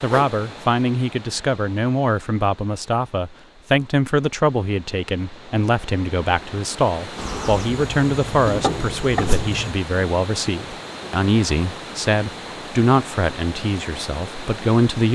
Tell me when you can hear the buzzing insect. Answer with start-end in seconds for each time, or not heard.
7.2-9.8.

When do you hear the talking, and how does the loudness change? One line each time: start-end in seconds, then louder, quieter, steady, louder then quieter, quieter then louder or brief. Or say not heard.
0.0-15.1 steady.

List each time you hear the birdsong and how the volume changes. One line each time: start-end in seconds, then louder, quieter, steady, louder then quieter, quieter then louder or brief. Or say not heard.
not heard.